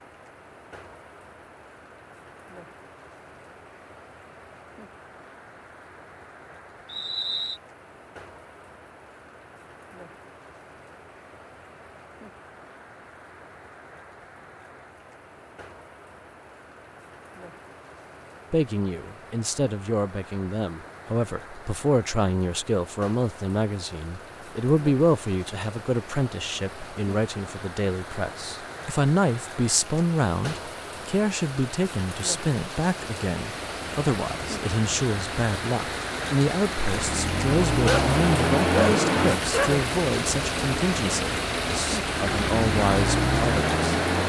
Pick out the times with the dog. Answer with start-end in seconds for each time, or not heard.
37.9-39.8.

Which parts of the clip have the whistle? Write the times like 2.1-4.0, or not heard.
6.8-7.6.